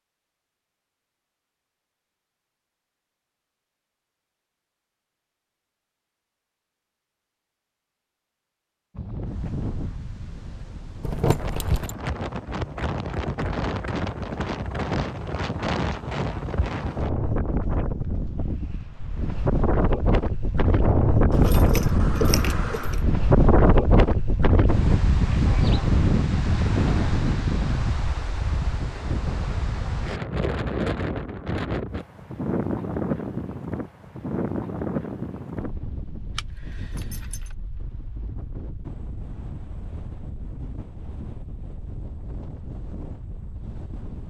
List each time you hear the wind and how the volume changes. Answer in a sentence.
You can hear the wind from 8.9 to 44.2 s, getting louder then quieter.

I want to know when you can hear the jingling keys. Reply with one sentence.
The jingling keys can be heard from 11.0 to 11.9 s, from 21.3 to 23.1 s and from 36.4 to 37.5 s.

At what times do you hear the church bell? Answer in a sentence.
You can't hear the church bell here.